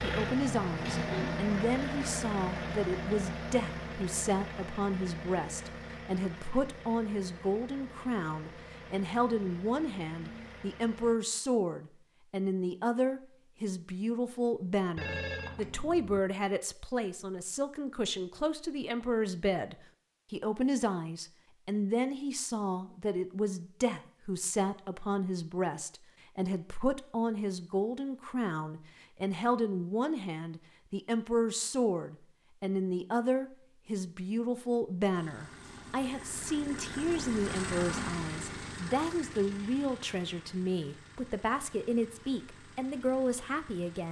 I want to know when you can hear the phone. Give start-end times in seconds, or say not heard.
14.9-16.2.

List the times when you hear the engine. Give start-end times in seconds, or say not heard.
0.0-11.2, 35.0-44.0.